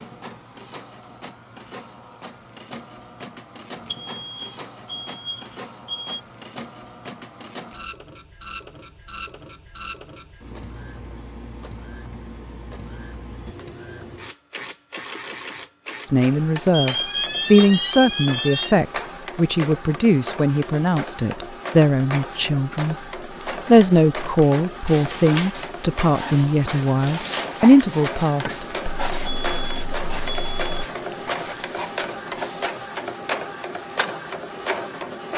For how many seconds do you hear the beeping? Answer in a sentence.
You can hear the beeping for 6 seconds altogether.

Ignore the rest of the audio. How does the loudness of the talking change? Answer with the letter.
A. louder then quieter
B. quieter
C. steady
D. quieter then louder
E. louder
C.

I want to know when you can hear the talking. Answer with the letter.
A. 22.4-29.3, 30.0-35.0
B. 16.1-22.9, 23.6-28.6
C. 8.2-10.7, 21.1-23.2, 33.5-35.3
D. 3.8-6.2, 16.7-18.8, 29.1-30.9
B.